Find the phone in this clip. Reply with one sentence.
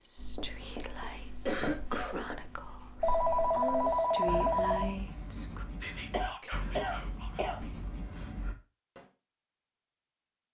The phone can be heard from 3.0 to 5.0 s.